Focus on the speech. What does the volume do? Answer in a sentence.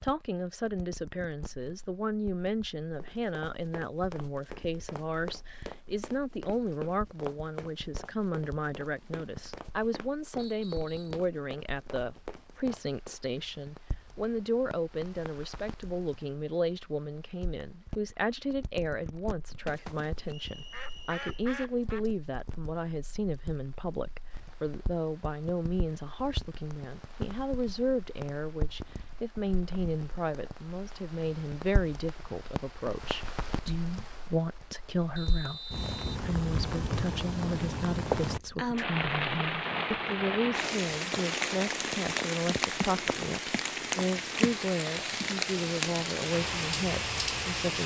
The loudness of the speech stays about the same.